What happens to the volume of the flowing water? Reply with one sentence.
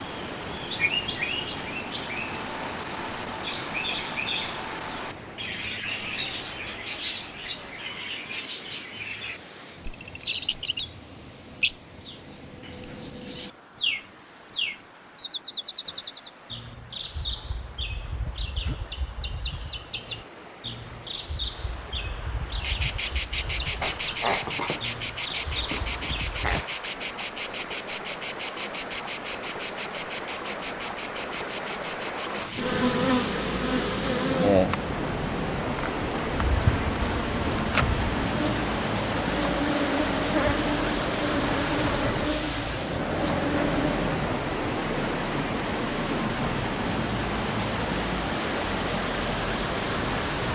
The volume of the flowing water goes down, then up.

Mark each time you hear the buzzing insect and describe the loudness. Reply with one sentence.
The buzzing insect can be heard from 22.6 to 44.1 s, getting quieter.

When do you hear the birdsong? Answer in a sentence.
You can hear the birdsong from 0.0 to 26.6 s.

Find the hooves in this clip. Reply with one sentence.
The hooves can't be heard in this clip.